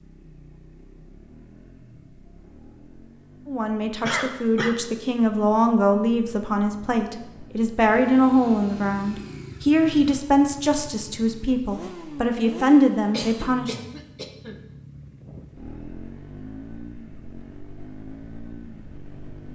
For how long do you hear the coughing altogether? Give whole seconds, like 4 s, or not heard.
2 s.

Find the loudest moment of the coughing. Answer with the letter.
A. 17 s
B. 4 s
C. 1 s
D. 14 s
B.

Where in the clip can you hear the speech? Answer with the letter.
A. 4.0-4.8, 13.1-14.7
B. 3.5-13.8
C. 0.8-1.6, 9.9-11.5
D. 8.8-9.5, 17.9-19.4
B.